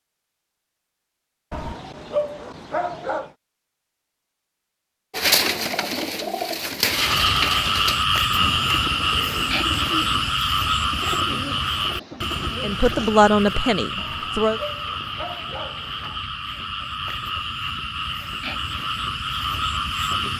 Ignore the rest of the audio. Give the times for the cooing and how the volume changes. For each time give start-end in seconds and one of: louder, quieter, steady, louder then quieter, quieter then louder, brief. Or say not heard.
5.1-13.2 quieter.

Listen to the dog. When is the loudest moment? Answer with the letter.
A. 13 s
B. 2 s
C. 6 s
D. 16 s
B.